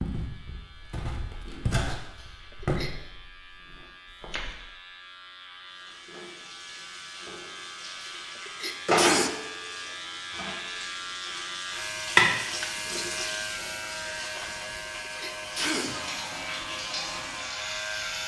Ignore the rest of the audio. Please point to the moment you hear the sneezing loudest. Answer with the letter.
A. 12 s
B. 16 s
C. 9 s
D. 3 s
C.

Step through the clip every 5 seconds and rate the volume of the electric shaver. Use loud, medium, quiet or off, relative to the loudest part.
quiet, medium, loud, loud.